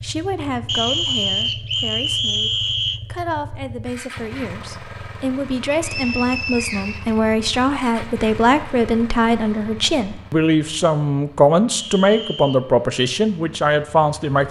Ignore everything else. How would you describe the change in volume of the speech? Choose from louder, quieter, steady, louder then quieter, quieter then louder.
louder.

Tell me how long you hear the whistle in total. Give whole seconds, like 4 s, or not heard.
5 s.